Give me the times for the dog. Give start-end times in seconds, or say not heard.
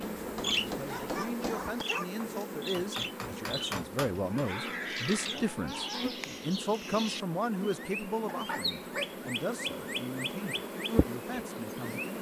0.7-2.1, 4.2-6.2, 8.3-9.2.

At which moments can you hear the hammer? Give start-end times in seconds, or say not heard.
0.0-4.5.